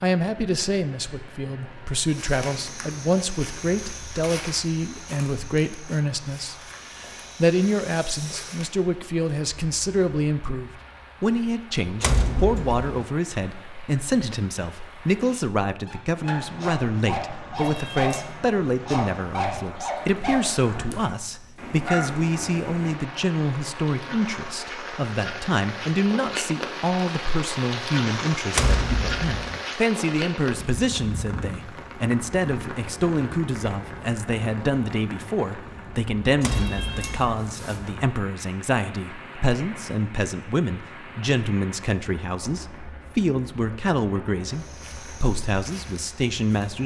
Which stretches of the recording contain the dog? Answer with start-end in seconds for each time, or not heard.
15.8-22.4.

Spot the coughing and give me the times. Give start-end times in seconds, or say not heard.
not heard.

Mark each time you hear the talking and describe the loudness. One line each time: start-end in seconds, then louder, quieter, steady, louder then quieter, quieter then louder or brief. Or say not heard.
0.0-46.8 steady.